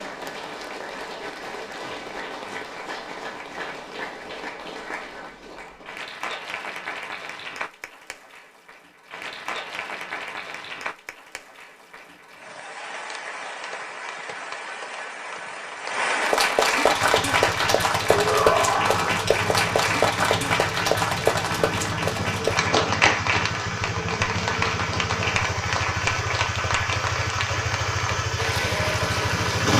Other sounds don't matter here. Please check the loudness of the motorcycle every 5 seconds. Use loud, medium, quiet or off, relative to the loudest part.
off, off, off, medium, loud, loud.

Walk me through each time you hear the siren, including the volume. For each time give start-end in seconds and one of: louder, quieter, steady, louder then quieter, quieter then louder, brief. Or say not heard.
not heard.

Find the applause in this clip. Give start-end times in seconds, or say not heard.
0.0-29.7.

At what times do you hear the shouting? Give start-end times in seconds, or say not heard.
18.1-19.2.